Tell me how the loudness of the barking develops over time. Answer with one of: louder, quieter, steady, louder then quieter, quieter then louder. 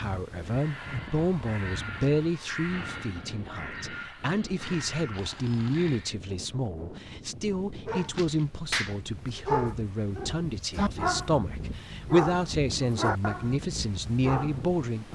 quieter.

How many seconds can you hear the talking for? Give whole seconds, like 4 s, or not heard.
15 s.